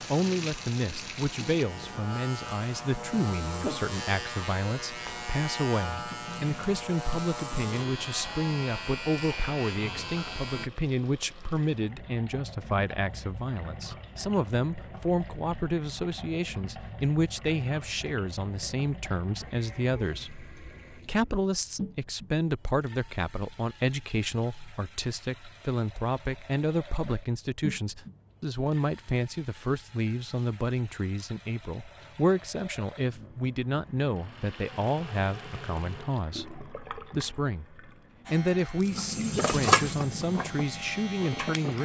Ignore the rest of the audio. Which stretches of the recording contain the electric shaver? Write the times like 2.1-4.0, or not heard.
0.0-10.7, 38.2-41.8.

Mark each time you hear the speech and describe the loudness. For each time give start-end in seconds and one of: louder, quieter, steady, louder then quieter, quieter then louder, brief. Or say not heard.
0.0-41.8 steady.